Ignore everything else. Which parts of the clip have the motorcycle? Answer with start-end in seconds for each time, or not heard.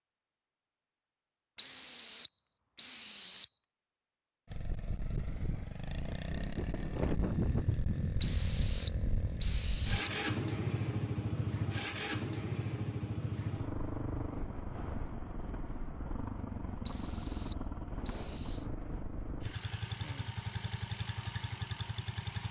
4.5-22.4.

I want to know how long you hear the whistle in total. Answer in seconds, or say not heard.
6 s.